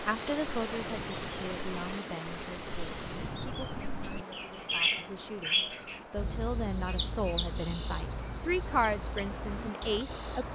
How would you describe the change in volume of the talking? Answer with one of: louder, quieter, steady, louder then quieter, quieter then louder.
quieter then louder.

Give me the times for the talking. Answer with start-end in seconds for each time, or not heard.
0.1-10.5.